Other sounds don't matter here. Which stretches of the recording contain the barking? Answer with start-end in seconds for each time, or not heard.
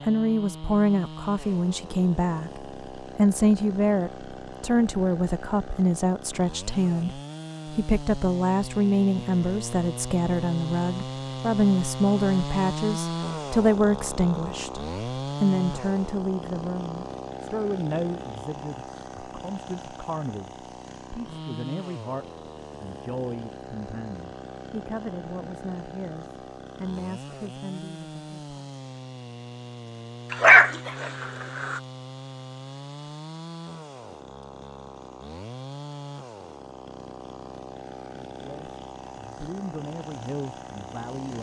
30.3-31.8.